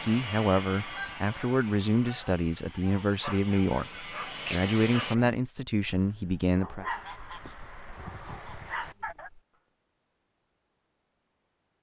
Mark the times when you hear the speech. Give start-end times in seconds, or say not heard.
0.0-6.8.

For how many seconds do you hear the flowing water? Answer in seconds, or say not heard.
not heard.